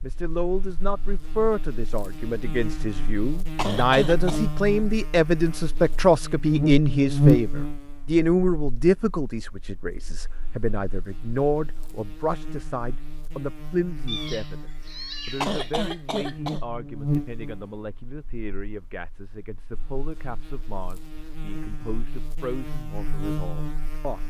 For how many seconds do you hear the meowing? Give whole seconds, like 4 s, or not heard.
2 s.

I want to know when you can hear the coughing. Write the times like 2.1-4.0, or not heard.
3.5-4.4, 15.4-16.6.